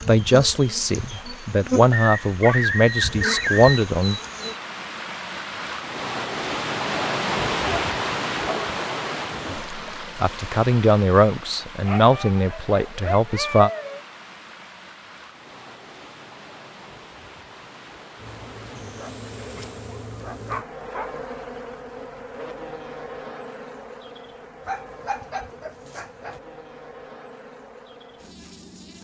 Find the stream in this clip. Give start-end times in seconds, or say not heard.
0.0-20.0.